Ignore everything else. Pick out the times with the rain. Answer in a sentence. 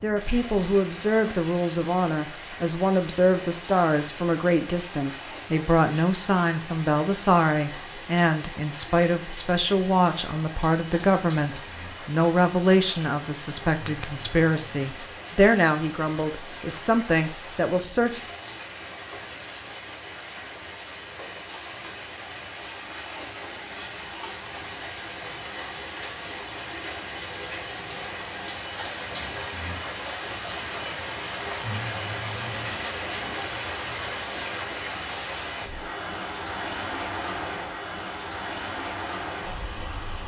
The rain can be heard from 0.0 to 40.2 s.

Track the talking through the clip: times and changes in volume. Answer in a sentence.
The talking can be heard from 0.0 to 18.2 s, at a steady volume.